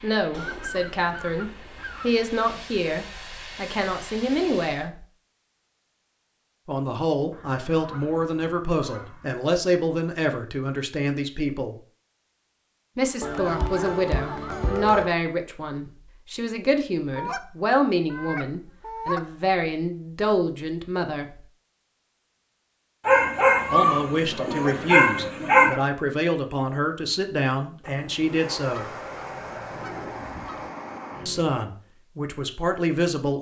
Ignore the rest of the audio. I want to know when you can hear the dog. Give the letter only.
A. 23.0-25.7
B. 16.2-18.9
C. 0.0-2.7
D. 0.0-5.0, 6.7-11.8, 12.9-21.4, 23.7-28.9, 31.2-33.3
A.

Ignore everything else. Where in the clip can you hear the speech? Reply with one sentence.
You can hear the speech from 0.0 to 5.0 s, from 6.7 to 11.8 s, from 12.9 to 21.4 s, from 23.7 to 28.9 s and from 31.2 to 33.3 s.